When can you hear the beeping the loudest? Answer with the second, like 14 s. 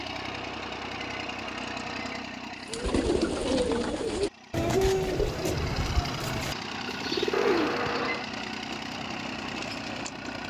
8 s.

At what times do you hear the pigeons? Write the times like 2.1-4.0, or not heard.
2.6-8.1.